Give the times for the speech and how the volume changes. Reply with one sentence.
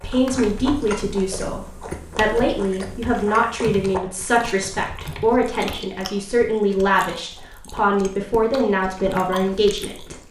The speech can be heard from 0.0 to 10.2 s, at a steady volume.